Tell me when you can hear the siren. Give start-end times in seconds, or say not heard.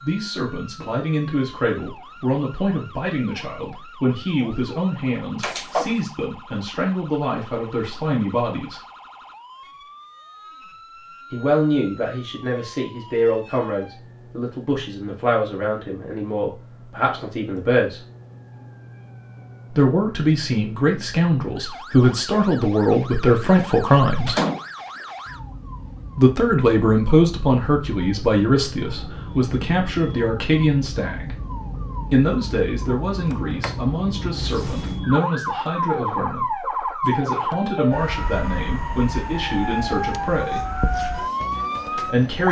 0.0-42.4.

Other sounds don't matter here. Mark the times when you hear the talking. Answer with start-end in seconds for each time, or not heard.
0.0-8.8, 11.3-18.0, 19.7-24.4, 26.1-31.4, 32.1-40.6, 41.9-42.4.